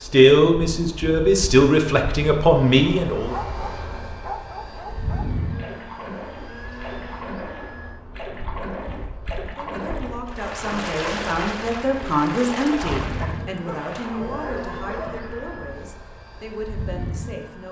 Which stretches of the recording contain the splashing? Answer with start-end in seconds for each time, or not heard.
5.5-14.2.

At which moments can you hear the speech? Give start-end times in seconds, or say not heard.
0.0-3.4, 9.6-17.6.